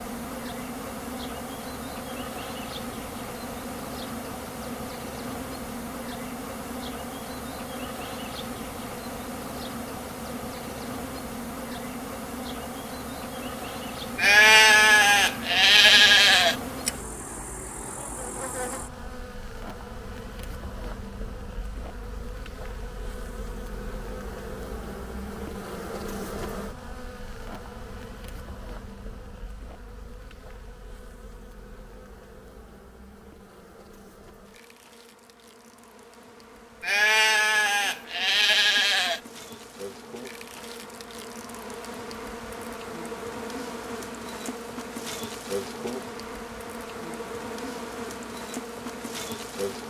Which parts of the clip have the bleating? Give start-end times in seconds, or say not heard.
14.2-16.9, 36.8-39.2.